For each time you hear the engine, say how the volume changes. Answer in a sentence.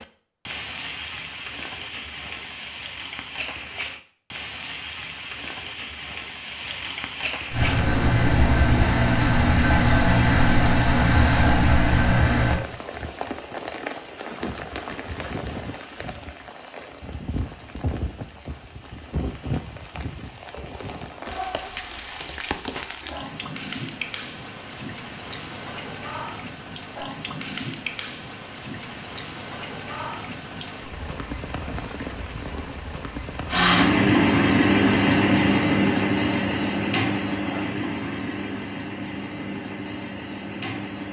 You can hear the engine from 7.5 to 12.6 s, at a steady volume; and from 33.5 to 41.0 s, getting quieter.